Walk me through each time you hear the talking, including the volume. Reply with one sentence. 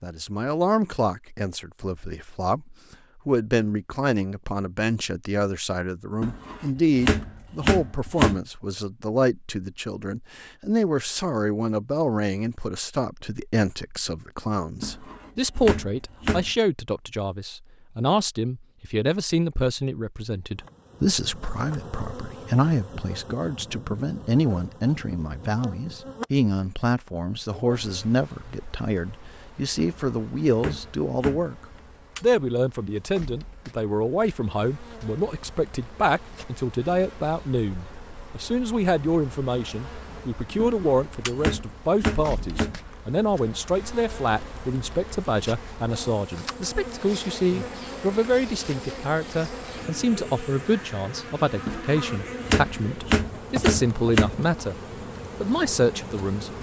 You can hear the talking from 0.0 to 54.8 s, at a steady volume; and briefly from 55.4 to 56.5 s.